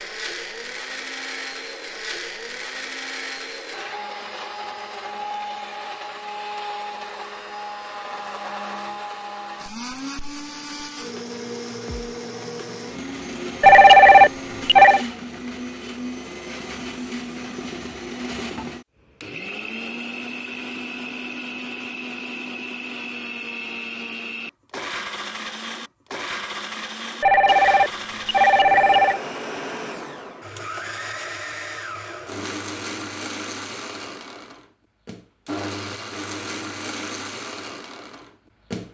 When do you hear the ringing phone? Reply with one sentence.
You can hear the ringing phone from 13.6 to 15.1 s and from 27.2 to 29.2 s.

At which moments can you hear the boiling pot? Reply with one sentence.
You can't hear the boiling pot here.